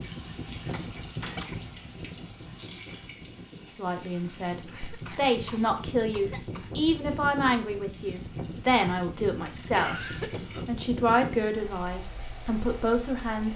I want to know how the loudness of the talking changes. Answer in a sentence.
The loudness of the talking stays about the same.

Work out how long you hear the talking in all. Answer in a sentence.
You can hear the talking for 10 seconds altogether.